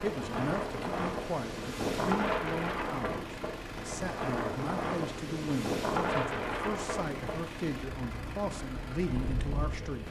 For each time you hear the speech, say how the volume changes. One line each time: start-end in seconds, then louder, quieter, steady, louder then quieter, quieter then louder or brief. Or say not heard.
0.0-10.0 steady.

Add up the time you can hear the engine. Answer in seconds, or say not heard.
10 s.